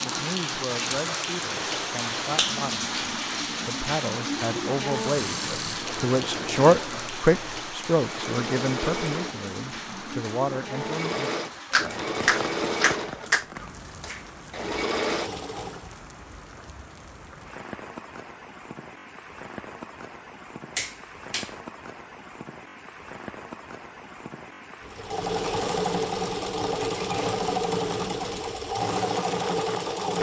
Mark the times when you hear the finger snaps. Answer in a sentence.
The finger snaps can be heard from 1.6 to 2.6 s, from 11.7 to 13.4 s and from 20.8 to 21.5 s.